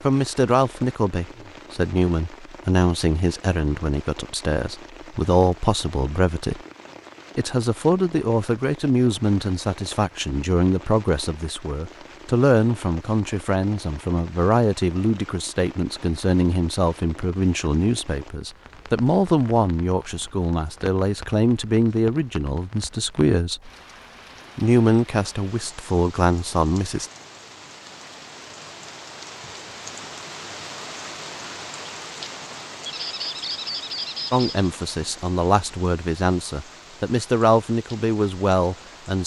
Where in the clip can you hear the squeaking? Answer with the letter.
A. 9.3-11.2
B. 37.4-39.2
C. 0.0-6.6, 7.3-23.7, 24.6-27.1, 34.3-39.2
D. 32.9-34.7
D.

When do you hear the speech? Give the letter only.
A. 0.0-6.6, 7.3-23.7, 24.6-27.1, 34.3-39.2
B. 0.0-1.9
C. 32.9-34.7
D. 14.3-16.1
A.